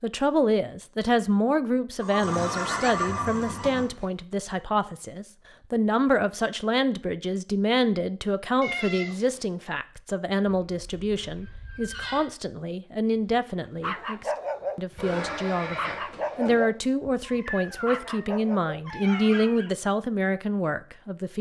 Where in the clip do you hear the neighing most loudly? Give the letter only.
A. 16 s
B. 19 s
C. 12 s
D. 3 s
D.